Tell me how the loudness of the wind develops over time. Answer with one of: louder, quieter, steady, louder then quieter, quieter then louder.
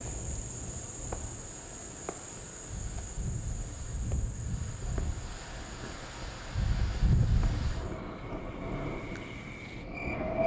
louder then quieter.